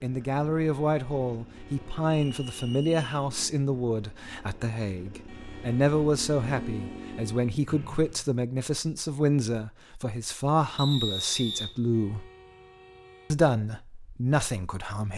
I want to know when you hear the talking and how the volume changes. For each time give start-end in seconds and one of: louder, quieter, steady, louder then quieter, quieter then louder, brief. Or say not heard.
0.0-12.3 steady
13.3-15.1 brief.